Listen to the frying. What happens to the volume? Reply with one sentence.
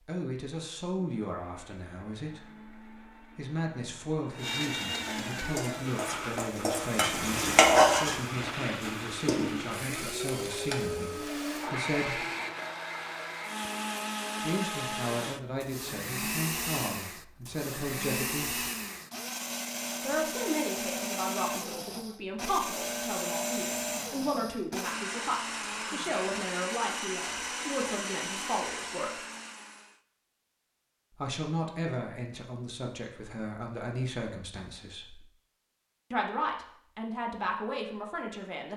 The volume of the frying goes up, then down.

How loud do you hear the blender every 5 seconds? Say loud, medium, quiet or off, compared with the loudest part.
medium, loud, loud, loud, loud, loud, off, off.